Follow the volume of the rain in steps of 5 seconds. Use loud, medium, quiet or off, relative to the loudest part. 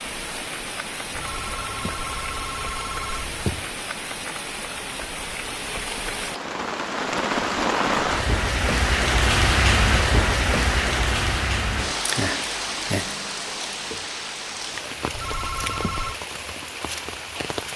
medium, loud, loud, medium.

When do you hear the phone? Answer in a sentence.
The phone can be heard from 1.1 to 3.7 s and from 15.1 to 16.1 s.